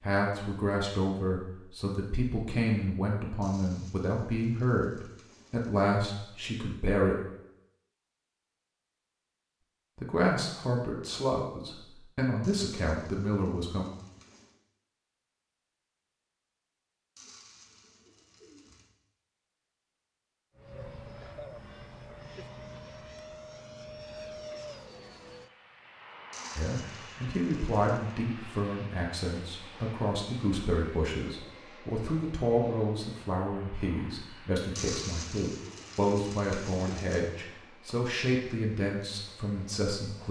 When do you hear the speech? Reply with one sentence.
You can hear the speech from 0.0 to 7.2 s, from 9.9 to 13.8 s and from 26.6 to 40.2 s.